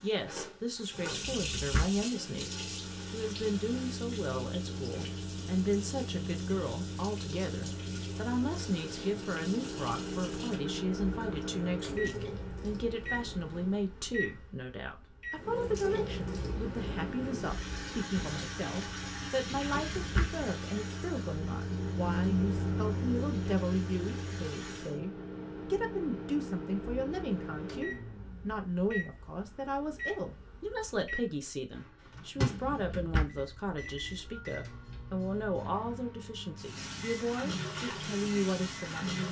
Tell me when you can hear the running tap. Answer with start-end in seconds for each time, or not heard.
0.0-13.8, 15.3-25.0, 36.5-39.2.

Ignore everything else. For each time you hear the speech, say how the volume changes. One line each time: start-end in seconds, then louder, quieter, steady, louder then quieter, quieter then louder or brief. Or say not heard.
0.0-39.2 steady.